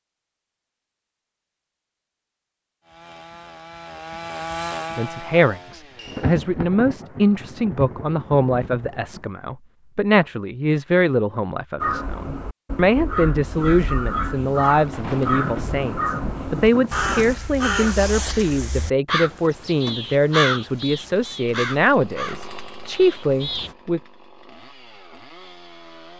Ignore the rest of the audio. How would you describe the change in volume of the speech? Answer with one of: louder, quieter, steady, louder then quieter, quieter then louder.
steady.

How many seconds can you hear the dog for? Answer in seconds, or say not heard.
not heard.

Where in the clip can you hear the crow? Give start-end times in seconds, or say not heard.
11.8-23.8.